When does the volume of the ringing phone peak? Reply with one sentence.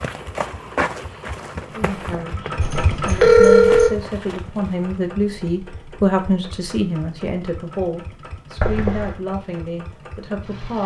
The loudest moment of the ringing phone is at 3 seconds.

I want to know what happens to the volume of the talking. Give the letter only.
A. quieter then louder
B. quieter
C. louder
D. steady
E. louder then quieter
E.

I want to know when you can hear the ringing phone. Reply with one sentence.
You can hear the ringing phone from 2.6 to 3.9 s and from 8.6 to 9.2 s.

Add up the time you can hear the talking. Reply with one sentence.
The talking can be heard for 9 seconds in total.